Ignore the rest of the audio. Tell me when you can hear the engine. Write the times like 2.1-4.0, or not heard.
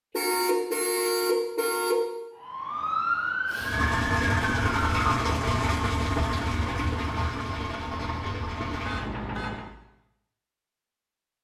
3.5-9.8.